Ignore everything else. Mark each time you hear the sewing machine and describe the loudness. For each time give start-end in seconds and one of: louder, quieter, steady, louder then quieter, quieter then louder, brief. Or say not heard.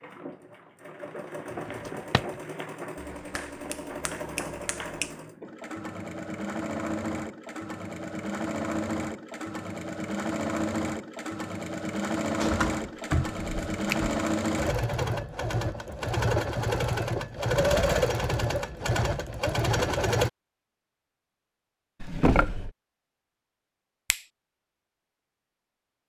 0.0-20.3 louder.